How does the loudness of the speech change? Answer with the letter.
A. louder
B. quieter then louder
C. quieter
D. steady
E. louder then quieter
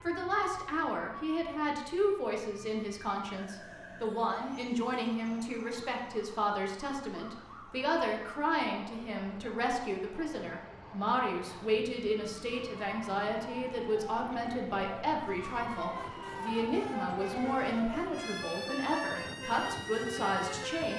D.